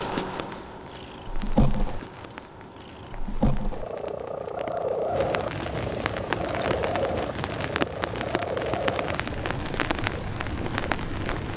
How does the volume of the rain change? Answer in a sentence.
The loudness of the rain goes up.